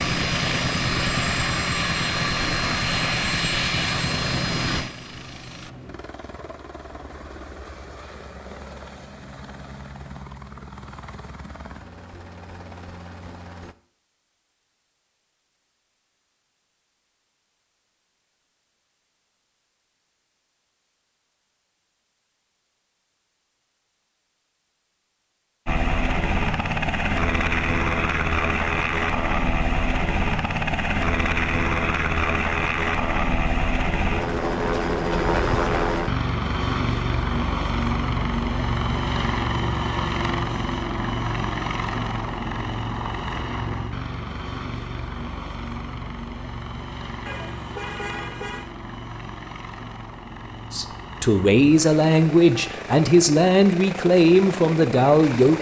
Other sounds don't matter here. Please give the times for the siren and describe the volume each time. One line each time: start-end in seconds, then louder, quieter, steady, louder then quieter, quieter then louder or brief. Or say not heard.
not heard.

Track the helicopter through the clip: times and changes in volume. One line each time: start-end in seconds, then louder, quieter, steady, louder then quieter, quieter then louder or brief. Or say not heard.
0.0-13.8 quieter
25.6-55.5 quieter.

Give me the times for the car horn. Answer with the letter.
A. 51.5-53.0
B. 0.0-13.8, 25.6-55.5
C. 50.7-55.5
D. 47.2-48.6
D.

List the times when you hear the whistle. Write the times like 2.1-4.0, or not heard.
not heard.